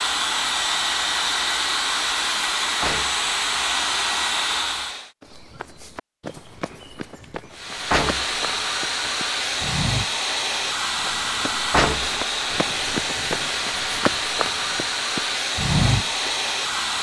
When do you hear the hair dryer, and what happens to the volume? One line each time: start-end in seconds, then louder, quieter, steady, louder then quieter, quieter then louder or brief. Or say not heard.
0.0-5.1 steady
7.5-16.9 steady.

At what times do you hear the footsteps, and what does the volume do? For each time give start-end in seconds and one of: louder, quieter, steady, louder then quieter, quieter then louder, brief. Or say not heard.
5.2-16.4 louder.